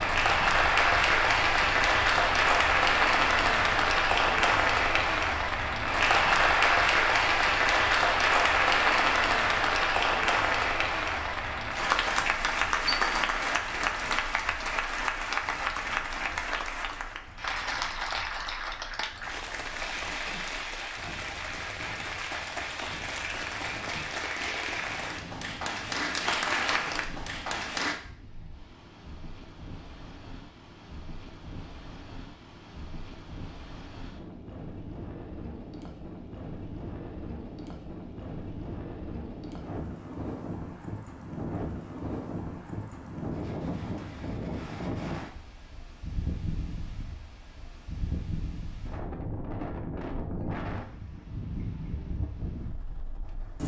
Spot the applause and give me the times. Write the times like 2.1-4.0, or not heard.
0.0-28.0.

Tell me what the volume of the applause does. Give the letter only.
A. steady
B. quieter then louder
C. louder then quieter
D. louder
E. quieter
E.